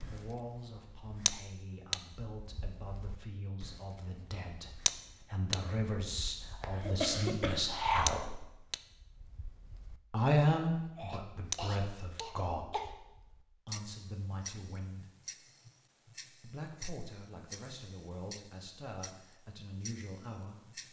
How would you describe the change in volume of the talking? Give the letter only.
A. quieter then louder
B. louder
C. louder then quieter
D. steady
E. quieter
C.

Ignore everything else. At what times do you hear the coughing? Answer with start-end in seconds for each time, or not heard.
6.6-7.9, 10.9-12.9.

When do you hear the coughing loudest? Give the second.
7 s.